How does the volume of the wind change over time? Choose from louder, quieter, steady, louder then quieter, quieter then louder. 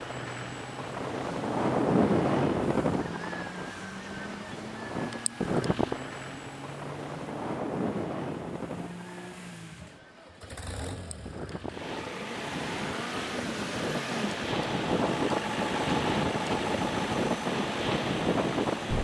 quieter then louder.